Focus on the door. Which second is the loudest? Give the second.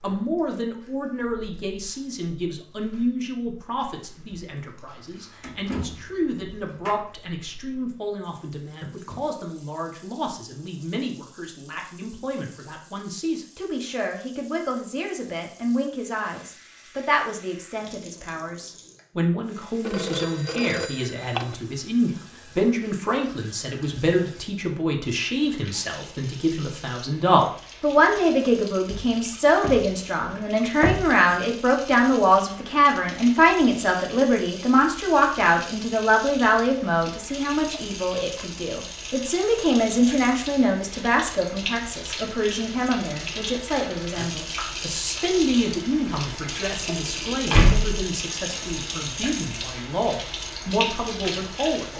48 s.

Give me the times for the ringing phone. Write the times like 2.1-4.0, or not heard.
19.8-21.6.